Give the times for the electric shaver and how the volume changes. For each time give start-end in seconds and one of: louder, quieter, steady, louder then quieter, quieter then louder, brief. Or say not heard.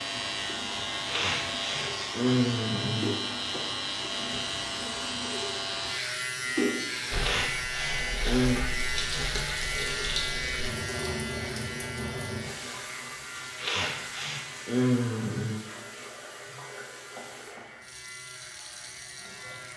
0.0-19.7 quieter.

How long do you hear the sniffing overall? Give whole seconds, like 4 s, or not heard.
6 s.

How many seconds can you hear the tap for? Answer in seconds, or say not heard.
20 s.